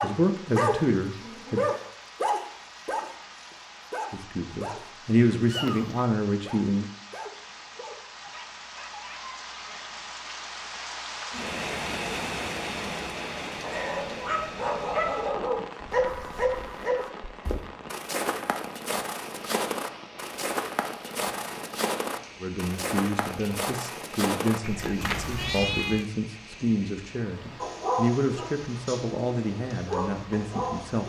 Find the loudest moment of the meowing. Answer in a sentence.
The volume of the meowing peaks at 26 seconds.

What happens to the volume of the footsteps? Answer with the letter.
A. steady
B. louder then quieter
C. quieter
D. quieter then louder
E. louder
A.